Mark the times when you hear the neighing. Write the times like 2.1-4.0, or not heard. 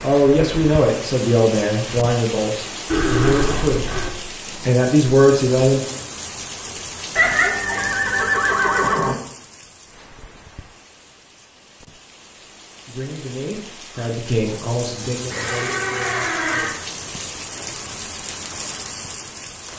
2.9-4.1, 7.2-9.2, 15.3-16.8.